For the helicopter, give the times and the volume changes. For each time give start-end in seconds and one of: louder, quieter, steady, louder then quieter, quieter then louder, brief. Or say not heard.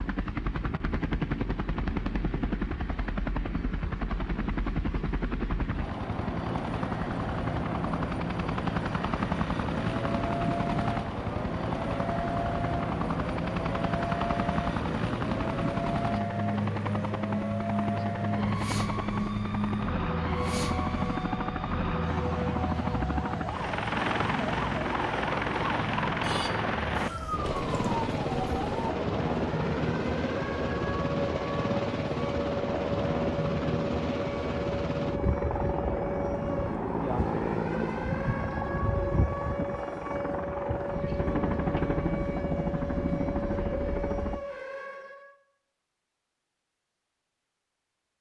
0.0-44.4 steady.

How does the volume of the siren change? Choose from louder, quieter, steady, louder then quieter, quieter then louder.
steady.